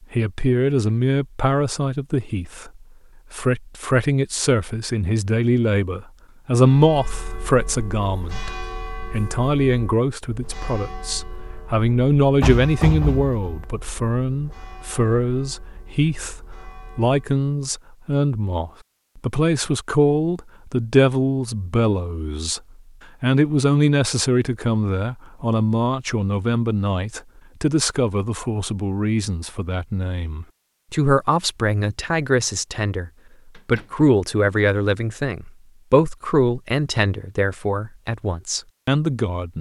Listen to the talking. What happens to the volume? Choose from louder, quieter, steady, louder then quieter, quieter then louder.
steady.